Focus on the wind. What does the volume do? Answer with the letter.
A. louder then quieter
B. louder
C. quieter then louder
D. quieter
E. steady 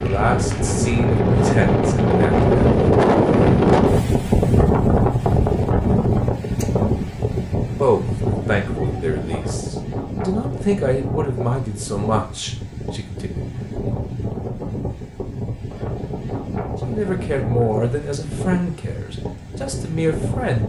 D.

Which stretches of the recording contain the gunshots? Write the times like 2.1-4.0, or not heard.
not heard.